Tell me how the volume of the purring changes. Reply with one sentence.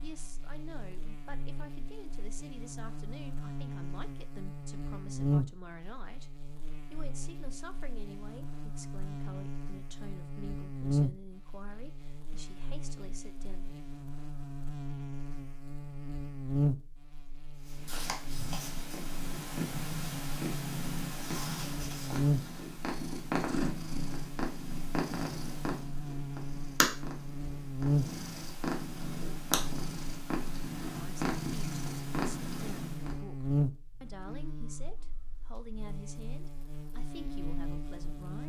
The loudness of the purring stays about the same.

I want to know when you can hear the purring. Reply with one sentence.
The purring can be heard from 17.6 to 33.1 s.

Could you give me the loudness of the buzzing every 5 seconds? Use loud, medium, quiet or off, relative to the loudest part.
medium, loud, loud, loud, loud, loud, loud, medium.